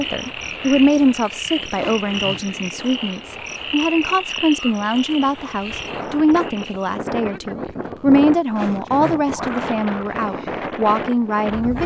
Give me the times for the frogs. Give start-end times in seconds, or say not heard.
0.0-7.0.